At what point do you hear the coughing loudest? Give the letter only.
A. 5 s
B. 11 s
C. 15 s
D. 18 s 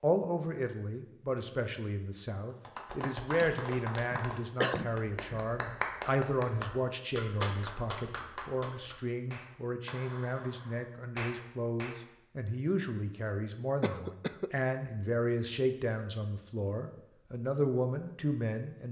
A.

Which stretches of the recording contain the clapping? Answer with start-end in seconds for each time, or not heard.
2.5-12.0.